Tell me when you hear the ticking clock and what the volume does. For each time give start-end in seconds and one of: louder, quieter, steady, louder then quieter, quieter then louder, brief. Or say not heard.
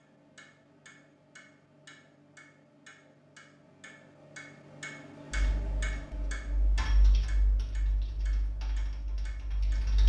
0.0-10.0 louder then quieter.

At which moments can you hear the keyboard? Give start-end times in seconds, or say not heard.
5.3-10.0.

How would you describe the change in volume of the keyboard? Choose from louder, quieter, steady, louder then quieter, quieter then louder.
louder then quieter.